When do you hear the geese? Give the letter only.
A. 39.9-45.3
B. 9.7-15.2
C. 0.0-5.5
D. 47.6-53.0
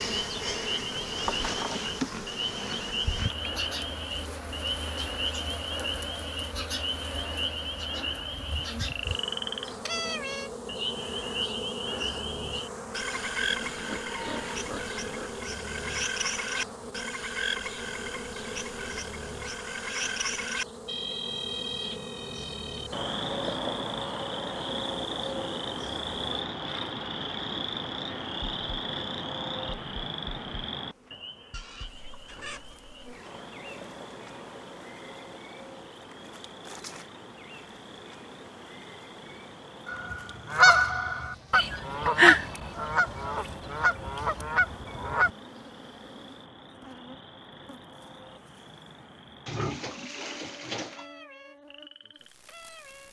A.